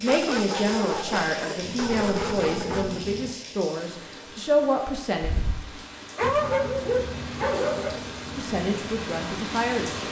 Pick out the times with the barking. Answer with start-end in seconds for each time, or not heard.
0.1-3.0, 5.2-8.0.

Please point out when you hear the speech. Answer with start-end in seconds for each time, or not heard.
0.0-5.3, 8.3-10.0.